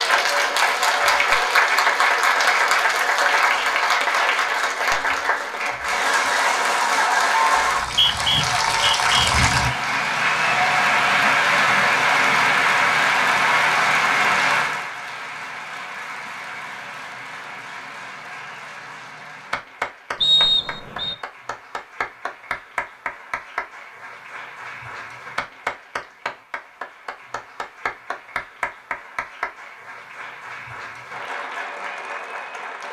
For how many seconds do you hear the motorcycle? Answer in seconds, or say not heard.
not heard.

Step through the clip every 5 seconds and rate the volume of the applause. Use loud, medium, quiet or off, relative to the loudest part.
loud, loud, loud, quiet, quiet, quiet, quiet.